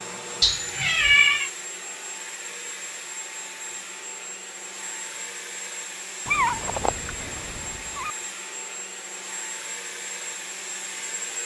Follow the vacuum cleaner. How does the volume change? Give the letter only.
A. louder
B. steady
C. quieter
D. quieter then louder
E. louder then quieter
B.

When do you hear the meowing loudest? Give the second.
1 s.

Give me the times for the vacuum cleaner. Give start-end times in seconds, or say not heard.
0.0-11.4.